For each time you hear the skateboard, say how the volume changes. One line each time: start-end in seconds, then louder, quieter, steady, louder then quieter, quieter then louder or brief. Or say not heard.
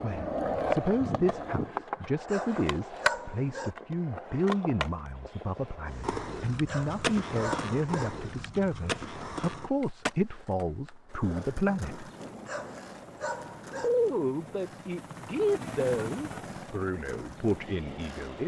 0.0-18.4 quieter.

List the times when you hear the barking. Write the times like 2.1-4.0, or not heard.
2.2-3.8, 6.7-8.1, 12.4-13.9.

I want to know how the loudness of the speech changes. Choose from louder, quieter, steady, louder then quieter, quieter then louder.
steady.